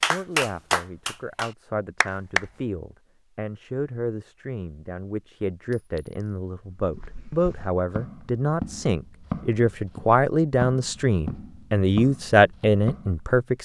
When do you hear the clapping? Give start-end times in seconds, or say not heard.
0.0-2.5.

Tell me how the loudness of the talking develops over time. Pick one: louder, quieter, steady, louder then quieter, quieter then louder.
louder.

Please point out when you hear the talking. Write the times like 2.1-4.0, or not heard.
0.0-13.5.